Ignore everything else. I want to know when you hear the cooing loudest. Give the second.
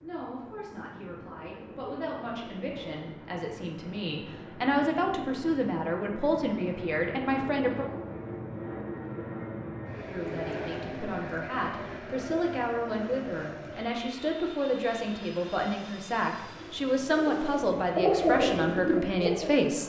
18 s.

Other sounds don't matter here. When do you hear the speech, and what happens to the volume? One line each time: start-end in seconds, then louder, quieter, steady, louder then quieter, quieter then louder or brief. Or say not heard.
0.0-7.8 louder
10.0-19.8 louder.